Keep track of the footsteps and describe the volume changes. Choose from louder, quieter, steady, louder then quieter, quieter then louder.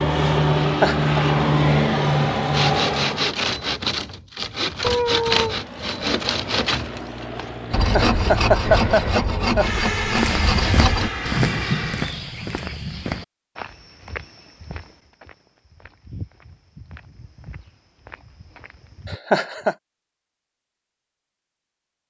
quieter.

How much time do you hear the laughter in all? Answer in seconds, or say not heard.
3 s.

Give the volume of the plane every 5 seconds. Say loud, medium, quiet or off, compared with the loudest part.
loud, quiet, medium, off, off.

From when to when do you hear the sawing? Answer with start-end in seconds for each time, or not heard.
2.5-11.1.